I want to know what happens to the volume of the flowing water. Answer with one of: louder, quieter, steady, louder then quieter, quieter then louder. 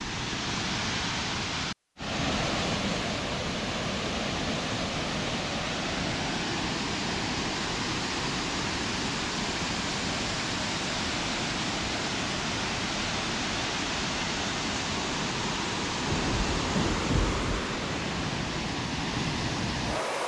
steady.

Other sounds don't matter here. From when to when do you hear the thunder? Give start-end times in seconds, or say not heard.
16.1-17.6.